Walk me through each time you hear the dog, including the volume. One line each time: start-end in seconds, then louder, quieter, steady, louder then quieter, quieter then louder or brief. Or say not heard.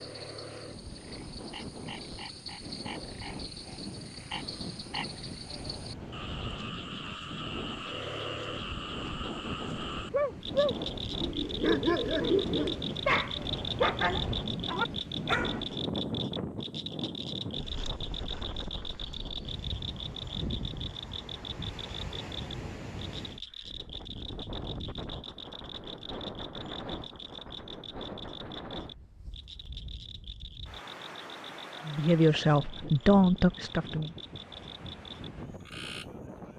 10.1-15.7 steady.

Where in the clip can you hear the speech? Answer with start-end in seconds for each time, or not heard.
31.9-34.1.